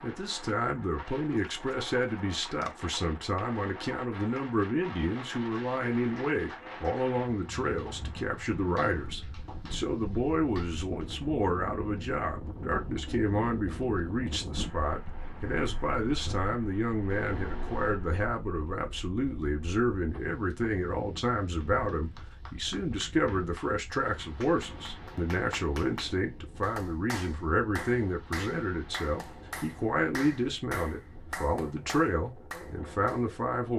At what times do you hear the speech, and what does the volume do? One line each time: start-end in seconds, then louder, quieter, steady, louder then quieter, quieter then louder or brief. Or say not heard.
0.0-33.7 steady.